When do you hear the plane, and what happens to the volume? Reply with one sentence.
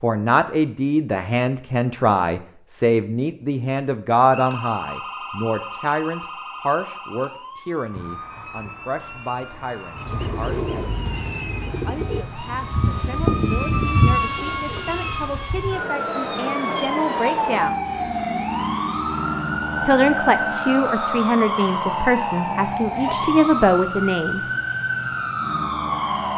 You can hear the plane from 7.9 to 26.3 s, getting louder then quieter.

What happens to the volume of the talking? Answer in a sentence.
The loudness of the talking goes down, then up.